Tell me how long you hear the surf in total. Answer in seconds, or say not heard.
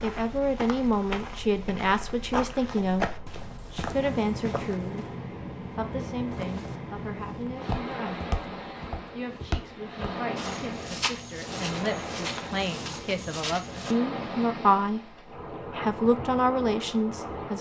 17 s.